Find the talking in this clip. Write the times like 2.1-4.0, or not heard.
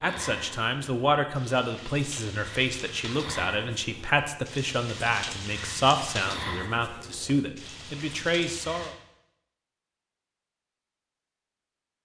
0.0-8.9.